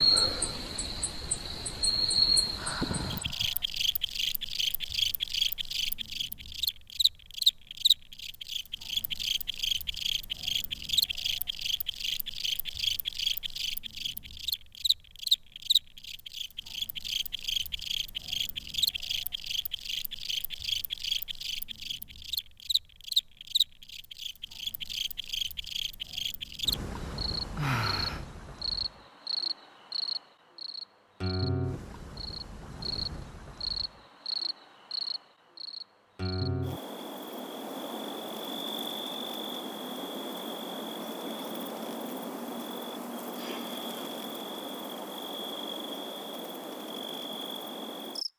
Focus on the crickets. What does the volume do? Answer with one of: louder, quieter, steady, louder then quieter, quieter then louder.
quieter.